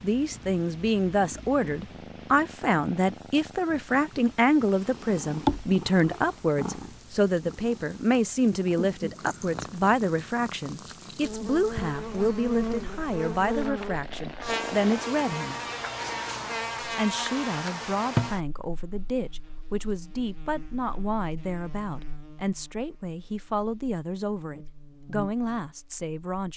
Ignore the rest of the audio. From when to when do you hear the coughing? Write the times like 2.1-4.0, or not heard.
not heard.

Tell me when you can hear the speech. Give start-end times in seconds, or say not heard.
0.0-15.6, 16.8-26.5.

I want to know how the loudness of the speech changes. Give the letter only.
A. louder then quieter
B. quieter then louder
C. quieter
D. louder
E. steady
C.